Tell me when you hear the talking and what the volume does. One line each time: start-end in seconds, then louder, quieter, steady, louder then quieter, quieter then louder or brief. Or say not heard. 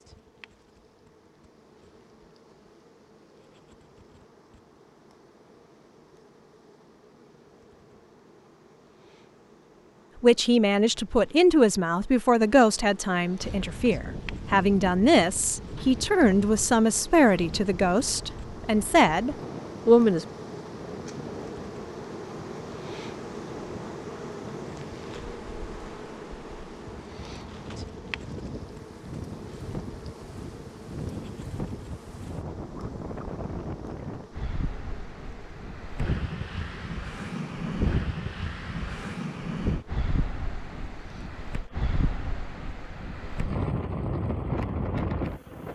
10.2-20.2 steady.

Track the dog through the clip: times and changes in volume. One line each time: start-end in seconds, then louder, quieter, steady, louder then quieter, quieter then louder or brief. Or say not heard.
not heard.